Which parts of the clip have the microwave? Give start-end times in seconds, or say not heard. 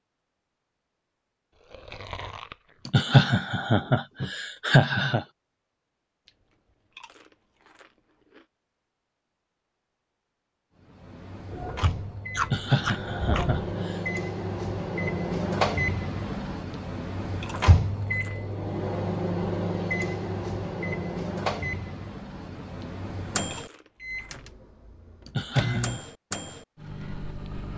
10.9-27.7.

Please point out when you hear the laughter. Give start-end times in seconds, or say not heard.
2.9-5.2, 12.4-13.9, 25.2-26.0.